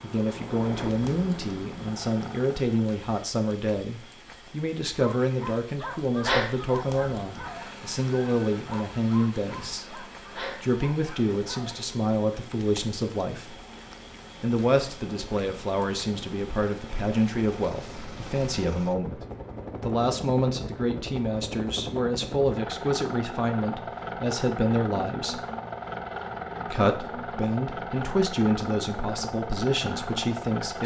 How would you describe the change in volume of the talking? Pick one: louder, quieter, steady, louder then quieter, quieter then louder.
steady.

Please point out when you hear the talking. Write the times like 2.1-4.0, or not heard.
0.0-13.6, 14.4-19.2, 19.8-25.4, 26.6-30.8.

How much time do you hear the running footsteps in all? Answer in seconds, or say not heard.
not heard.